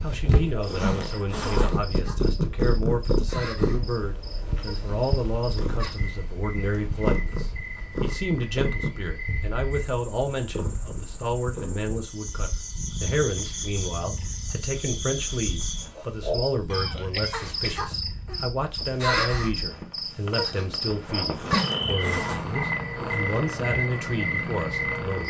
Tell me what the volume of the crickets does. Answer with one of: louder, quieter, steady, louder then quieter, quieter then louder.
louder.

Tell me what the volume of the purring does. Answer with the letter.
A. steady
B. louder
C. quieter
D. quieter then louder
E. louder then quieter
D.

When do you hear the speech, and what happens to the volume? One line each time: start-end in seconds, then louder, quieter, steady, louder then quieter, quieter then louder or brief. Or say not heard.
0.0-25.2 steady.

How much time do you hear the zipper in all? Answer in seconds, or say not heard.
3 s.